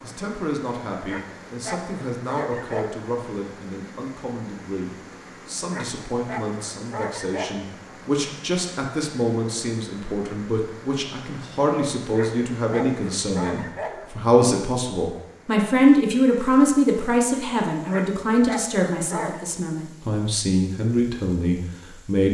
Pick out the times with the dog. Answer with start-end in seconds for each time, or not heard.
1.1-3.0, 5.7-7.6, 12.1-14.1, 17.9-19.4.